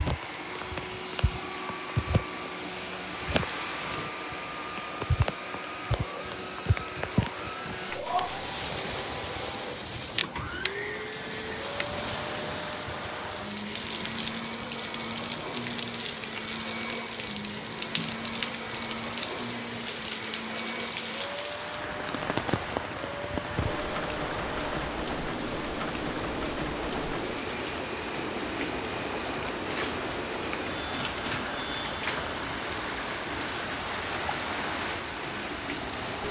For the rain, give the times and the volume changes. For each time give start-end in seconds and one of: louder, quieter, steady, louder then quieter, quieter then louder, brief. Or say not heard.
0.0-36.2 steady.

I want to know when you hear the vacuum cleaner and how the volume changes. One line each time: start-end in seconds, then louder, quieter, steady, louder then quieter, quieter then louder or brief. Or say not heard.
0.0-36.2 steady.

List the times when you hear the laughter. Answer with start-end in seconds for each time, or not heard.
7.9-8.4.